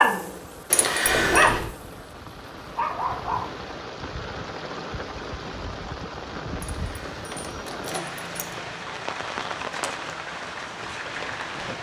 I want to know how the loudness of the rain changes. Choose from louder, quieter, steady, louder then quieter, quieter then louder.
louder.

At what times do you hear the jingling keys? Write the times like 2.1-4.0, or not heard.
0.7-1.5, 6.8-8.6.